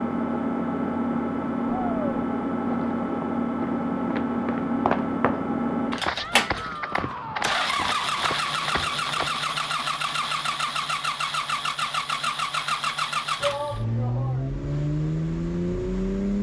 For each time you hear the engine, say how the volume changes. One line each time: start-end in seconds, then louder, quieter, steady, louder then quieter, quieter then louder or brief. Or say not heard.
0.0-16.3 steady.